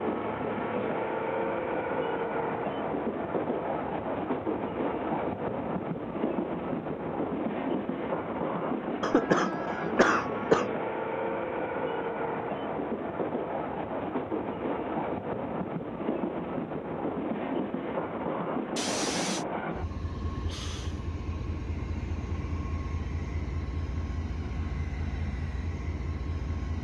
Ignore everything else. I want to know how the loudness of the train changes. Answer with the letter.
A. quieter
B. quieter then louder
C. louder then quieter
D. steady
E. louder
A.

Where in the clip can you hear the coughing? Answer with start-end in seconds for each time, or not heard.
9.0-10.7, 18.8-19.4.